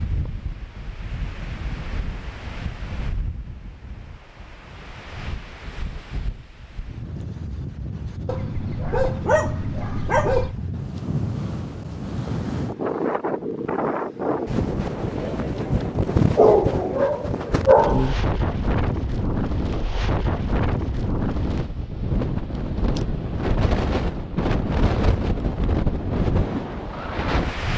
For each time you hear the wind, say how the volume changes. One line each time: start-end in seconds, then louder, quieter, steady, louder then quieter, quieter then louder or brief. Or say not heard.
0.0-27.7 louder.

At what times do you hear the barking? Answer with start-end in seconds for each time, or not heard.
8.2-10.6, 16.4-18.1.